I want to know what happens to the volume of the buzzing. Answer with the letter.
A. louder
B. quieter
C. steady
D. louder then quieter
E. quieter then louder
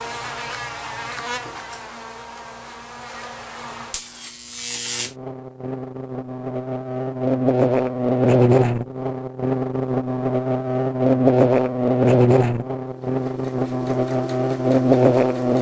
A.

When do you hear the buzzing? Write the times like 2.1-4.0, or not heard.
0.0-15.5.